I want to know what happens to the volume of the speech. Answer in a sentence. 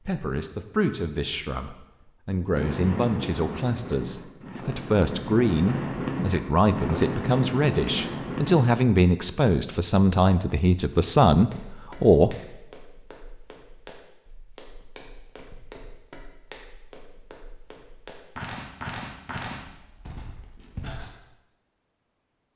The volume of the speech goes up.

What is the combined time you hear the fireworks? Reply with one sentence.
The fireworks can be heard for 6 seconds in total.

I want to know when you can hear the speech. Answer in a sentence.
The speech can be heard from 0.0 to 12.3 s.